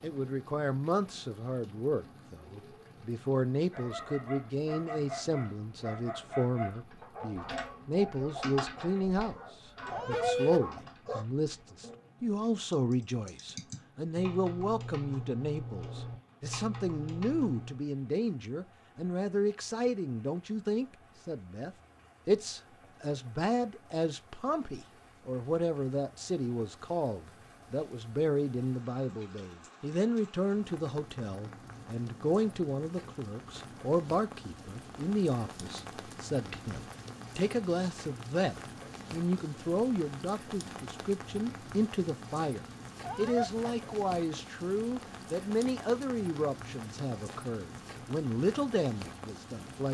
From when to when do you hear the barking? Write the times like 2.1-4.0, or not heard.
3.7-11.2.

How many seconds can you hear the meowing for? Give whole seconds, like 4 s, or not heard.
2 s.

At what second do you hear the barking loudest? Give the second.
10 s.